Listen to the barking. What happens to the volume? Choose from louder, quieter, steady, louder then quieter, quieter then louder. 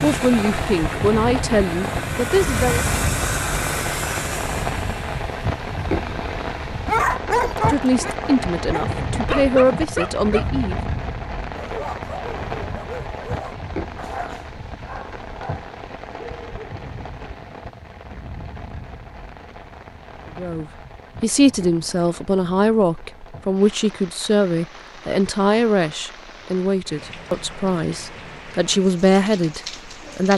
quieter.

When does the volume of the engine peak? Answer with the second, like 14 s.
3 s.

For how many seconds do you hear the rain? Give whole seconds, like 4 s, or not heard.
30 s.